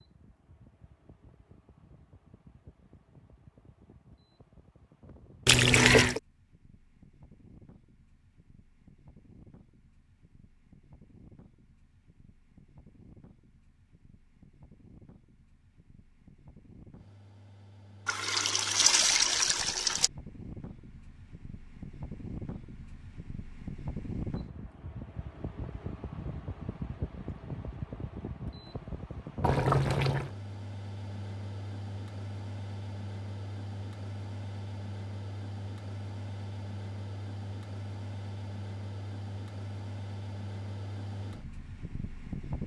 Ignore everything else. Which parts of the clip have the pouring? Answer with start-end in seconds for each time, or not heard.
5.5-6.2, 18.1-20.1, 29.4-30.3.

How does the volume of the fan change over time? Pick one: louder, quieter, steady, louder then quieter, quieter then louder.
louder.